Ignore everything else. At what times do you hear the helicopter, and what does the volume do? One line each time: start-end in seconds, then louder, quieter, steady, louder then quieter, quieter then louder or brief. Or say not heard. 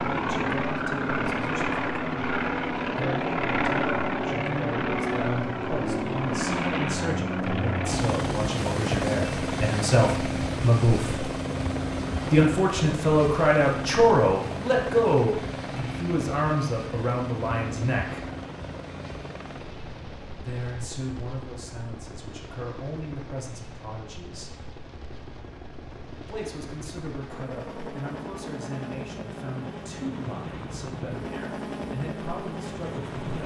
0.0-33.4 quieter then louder.